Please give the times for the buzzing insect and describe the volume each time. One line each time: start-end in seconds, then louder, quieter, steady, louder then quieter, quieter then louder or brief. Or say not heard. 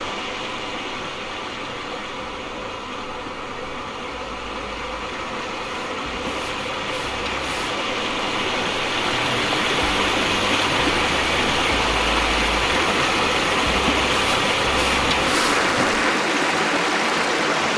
0.0-16.1 louder.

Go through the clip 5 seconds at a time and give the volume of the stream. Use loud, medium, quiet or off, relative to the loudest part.
quiet, medium, loud, loud.